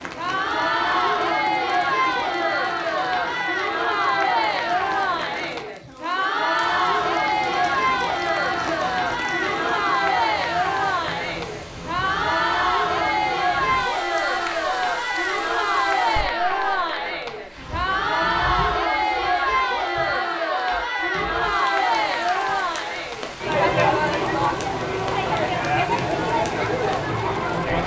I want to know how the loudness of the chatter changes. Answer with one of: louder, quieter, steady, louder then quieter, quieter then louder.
steady.